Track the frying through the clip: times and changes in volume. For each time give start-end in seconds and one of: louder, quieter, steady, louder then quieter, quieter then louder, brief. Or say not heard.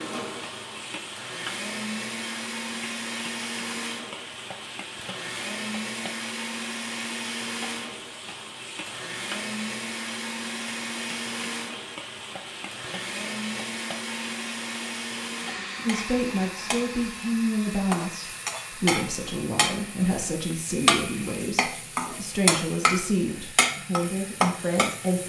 0.0-25.2 louder.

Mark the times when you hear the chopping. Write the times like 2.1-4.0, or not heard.
not heard.